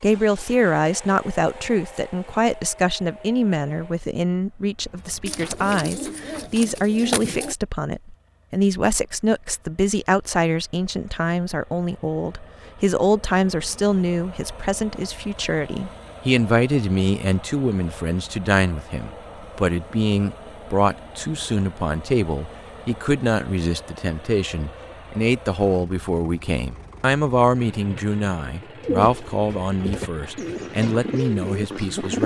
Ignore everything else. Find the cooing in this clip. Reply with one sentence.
You can hear the cooing from 5.2 to 7.5 s and from 28.8 to 32.2 s.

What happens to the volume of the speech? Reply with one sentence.
The volume of the speech stays about the same.